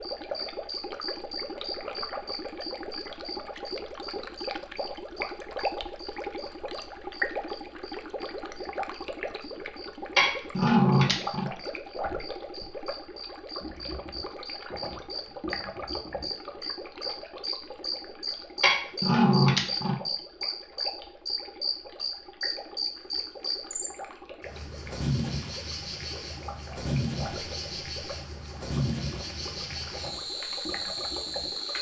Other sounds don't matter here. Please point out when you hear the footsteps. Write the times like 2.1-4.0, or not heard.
not heard.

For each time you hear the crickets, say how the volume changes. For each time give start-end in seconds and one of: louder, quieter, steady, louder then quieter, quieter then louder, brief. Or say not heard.
0.0-31.7 quieter then louder.